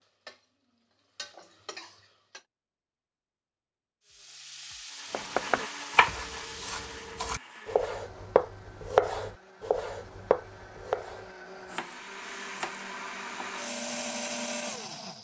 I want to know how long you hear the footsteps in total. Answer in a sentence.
You can't hear the footsteps here.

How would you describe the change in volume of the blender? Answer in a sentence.
The volume of the blender goes down, then up.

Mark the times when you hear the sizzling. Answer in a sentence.
You can hear the sizzling from 0.0 to 2.5 s and from 4.0 to 7.2 s.